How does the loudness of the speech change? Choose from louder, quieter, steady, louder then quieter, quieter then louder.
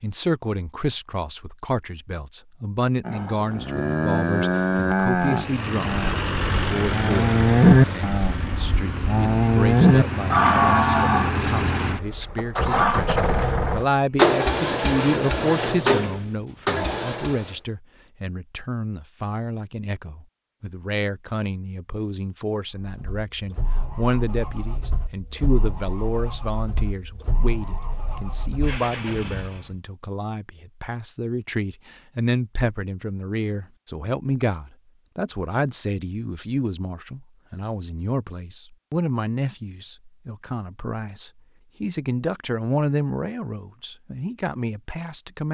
steady.